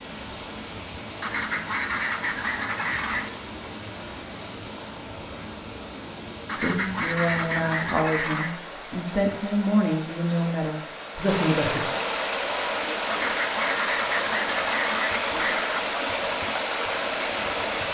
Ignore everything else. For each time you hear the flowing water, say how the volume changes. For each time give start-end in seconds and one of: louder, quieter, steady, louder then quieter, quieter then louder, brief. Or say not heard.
0.0-17.8 louder.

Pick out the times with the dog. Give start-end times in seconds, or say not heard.
not heard.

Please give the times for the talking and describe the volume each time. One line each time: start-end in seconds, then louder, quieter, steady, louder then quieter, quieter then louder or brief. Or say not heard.
6.6-11.9 steady.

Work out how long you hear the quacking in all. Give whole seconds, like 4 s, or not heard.
7 s.